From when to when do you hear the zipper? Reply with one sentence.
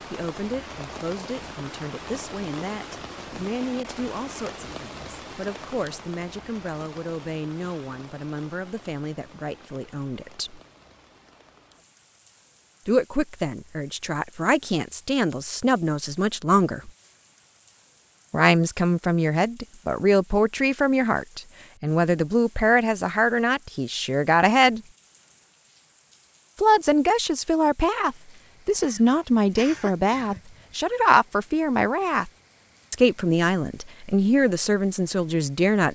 You can't hear the zipper here.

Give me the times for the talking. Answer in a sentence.
You can hear the talking from 0.1 to 10.6 s, from 12.8 to 16.9 s, from 18.3 to 24.8 s, from 26.6 to 32.3 s and from 32.9 to 35.9 s.